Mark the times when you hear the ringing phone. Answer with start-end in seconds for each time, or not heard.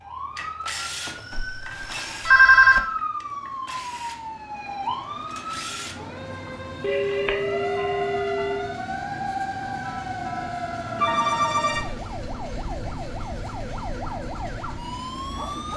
1.1-2.8, 6.8-8.7, 10.9-11.9.